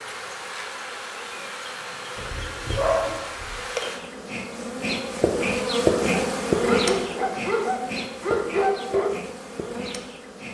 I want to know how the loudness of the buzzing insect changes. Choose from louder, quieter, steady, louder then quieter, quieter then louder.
louder then quieter.